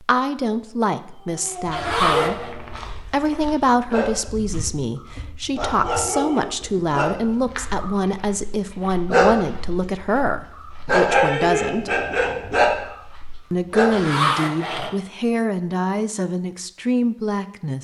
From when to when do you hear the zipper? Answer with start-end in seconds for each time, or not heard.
1.7-2.5, 13.9-14.9.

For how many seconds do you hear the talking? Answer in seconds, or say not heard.
16 s.